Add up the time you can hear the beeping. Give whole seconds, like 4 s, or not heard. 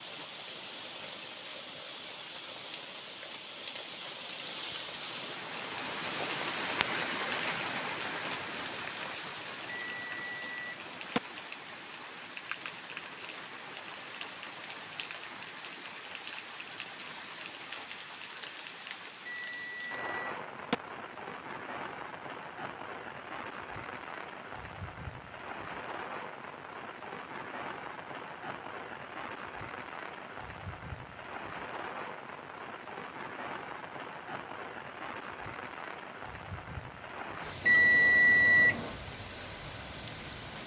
4 s.